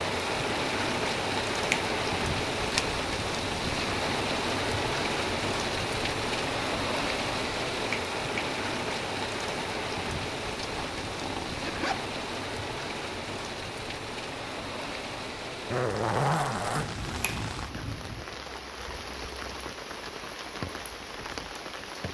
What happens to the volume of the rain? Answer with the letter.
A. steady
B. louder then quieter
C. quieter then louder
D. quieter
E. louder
D.